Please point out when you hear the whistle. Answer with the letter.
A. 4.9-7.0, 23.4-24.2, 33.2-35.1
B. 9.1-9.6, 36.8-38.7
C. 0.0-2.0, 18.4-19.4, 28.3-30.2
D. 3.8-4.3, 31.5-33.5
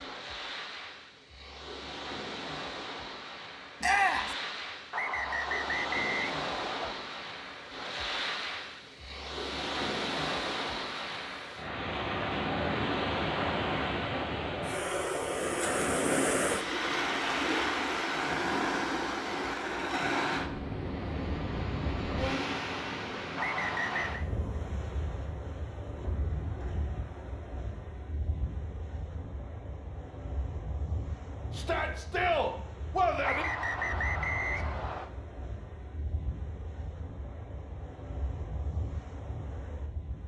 A.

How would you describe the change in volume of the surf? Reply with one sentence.
The loudness of the surf goes up, then down.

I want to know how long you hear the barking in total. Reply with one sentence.
The barking can't be heard in this clip.